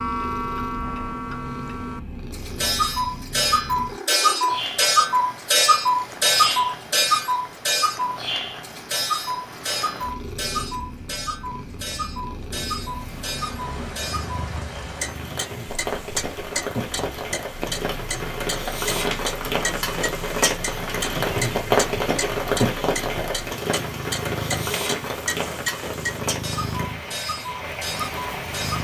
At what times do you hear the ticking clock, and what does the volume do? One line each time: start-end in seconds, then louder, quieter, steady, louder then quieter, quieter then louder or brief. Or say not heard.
0.0-28.7 quieter.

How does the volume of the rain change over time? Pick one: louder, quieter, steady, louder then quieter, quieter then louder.
louder then quieter.